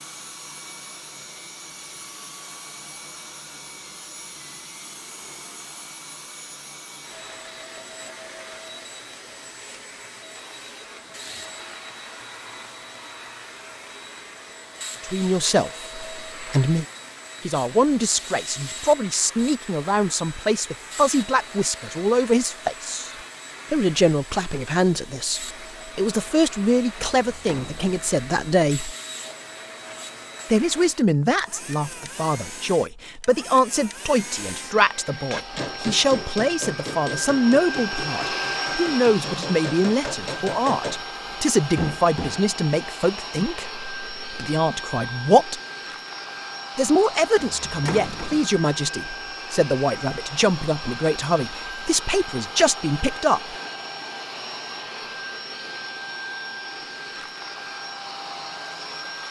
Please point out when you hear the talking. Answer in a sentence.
You can hear the talking from 15.0 to 16.9 s, from 17.4 to 28.9 s, from 30.5 to 45.6 s and from 46.8 to 53.5 s.